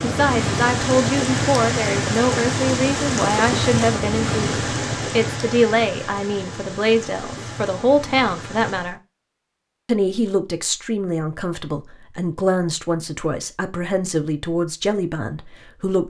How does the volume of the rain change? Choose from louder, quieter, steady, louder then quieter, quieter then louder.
quieter.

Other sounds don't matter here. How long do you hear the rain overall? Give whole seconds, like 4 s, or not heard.
9 s.